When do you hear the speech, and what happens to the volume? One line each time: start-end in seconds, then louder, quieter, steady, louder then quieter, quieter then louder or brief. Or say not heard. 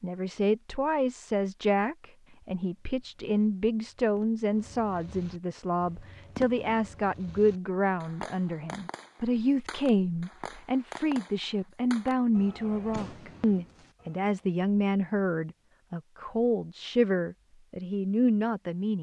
0.0-18.9 steady.